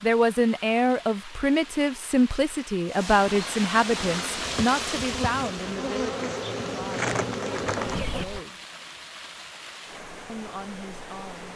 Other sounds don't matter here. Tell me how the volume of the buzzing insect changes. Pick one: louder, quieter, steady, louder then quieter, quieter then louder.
louder.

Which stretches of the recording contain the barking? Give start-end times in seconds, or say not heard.
not heard.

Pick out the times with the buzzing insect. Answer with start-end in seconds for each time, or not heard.
3.9-8.4.